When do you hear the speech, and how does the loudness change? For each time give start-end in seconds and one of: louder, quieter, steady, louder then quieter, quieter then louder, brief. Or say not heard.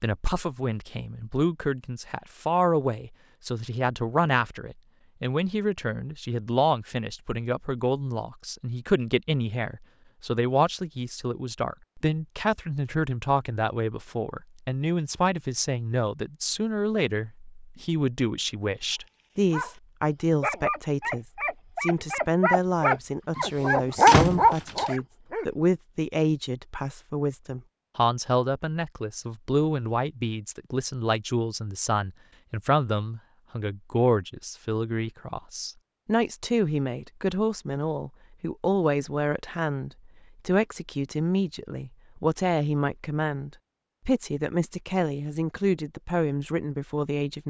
0.0-47.4 steady.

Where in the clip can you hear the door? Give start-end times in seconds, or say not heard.
23.4-24.9.